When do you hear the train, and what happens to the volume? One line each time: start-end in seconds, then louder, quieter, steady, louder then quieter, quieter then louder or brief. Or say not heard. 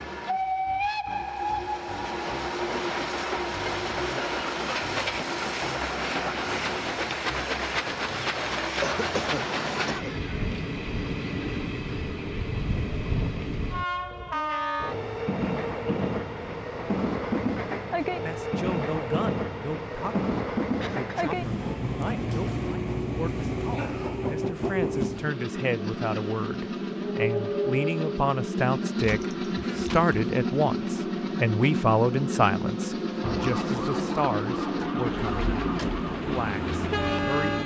0.0-37.6 steady.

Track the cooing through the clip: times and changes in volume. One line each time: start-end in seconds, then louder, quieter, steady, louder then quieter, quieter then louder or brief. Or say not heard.
not heard.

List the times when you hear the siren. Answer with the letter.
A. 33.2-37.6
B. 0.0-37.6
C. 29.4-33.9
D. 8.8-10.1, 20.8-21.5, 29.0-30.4
A.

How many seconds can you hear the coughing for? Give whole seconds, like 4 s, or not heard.
3 s.